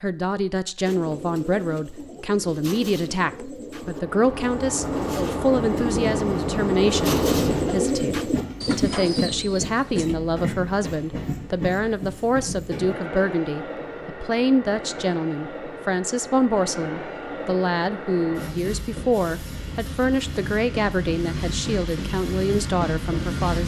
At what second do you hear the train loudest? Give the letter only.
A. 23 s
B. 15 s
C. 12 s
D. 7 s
D.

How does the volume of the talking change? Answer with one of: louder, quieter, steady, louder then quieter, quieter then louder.
steady.